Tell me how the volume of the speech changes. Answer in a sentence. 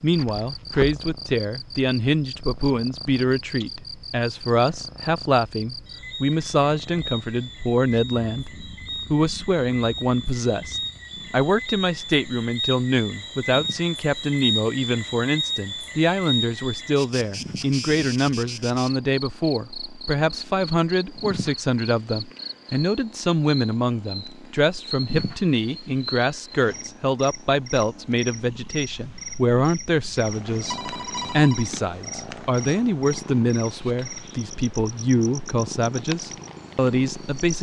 The loudness of the speech stays about the same.